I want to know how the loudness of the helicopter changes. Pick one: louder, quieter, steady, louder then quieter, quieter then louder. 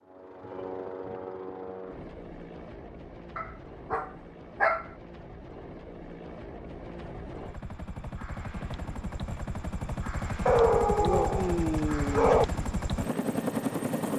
quieter then louder.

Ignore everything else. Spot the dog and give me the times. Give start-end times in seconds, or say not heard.
3.4-4.9, 10.4-12.4.